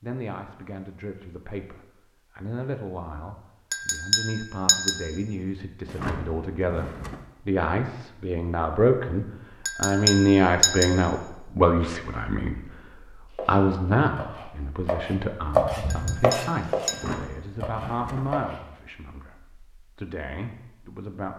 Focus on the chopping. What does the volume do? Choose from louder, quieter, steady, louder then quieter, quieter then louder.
louder then quieter.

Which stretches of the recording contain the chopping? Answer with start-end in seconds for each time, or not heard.
13.3-18.6.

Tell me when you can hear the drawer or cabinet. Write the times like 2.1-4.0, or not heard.
5.8-7.2, 16.9-18.4.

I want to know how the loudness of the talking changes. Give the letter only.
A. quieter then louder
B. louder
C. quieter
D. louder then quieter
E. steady
D.